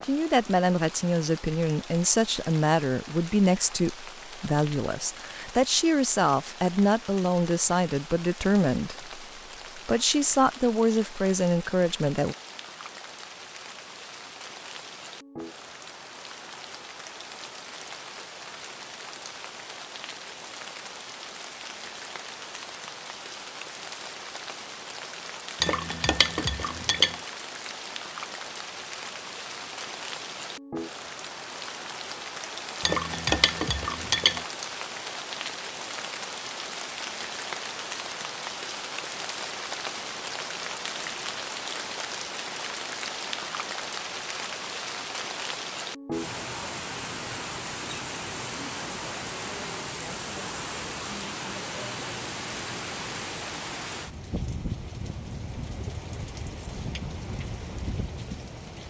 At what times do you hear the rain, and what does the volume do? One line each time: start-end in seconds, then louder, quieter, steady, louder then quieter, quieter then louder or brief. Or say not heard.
0.0-58.8 louder.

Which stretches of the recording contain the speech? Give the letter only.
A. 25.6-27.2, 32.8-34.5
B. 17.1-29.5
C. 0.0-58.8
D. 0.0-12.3
D.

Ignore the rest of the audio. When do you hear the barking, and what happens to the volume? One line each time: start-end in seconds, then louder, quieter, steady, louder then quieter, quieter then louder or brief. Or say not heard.
not heard.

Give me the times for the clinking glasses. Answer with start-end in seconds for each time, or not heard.
25.6-27.2, 32.8-34.5.